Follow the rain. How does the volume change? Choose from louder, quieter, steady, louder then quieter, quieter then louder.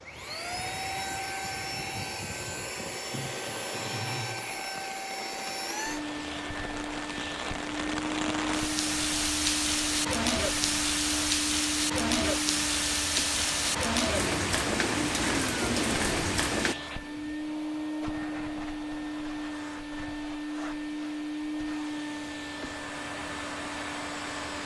louder.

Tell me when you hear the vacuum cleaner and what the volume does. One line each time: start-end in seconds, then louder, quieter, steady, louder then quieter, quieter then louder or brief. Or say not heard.
0.0-24.6 steady.